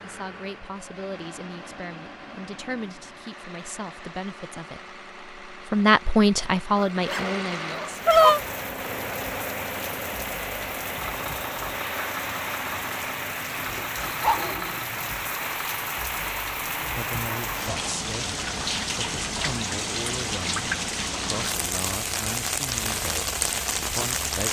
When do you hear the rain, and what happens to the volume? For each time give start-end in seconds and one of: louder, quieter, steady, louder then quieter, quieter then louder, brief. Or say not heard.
7.8-24.4 louder.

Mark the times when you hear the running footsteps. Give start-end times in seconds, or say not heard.
not heard.